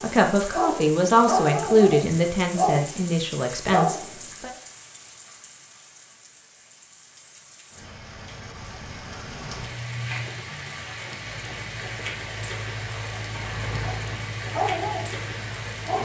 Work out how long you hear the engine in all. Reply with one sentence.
The engine can be heard for 5 seconds in total.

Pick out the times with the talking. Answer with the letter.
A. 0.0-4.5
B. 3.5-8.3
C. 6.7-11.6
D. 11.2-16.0
A.